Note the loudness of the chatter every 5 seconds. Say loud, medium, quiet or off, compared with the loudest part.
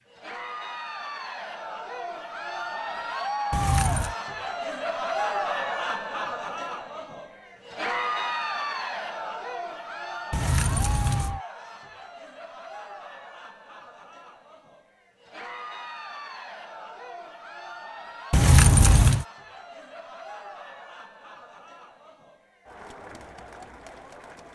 loud, loud, medium, medium, quiet.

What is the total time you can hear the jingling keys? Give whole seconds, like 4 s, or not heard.
3 s.